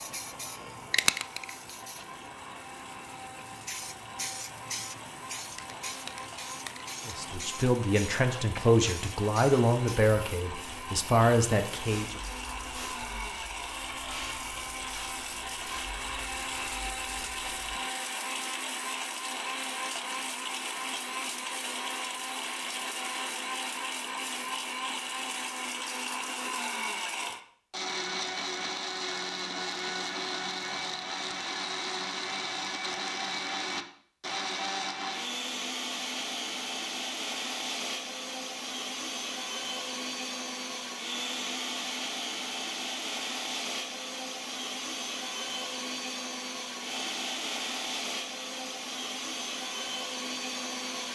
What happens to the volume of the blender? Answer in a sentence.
The volume of the blender goes up.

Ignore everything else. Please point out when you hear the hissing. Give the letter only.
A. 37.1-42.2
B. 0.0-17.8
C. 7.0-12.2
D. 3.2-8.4
B.